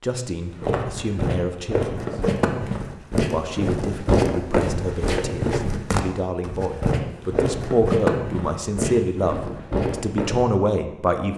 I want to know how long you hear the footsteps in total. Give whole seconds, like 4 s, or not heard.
10 s.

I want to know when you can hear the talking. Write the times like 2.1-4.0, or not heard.
0.0-2.2, 3.3-11.3.